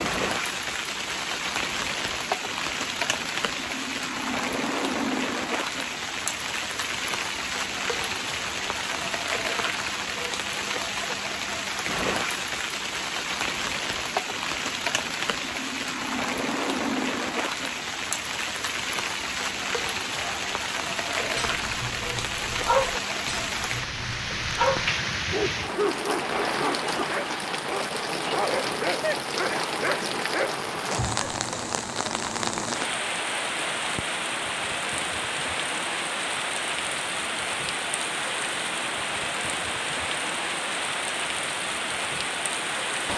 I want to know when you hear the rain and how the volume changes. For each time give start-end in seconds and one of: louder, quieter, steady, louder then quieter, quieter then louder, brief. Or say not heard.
0.0-43.1 steady.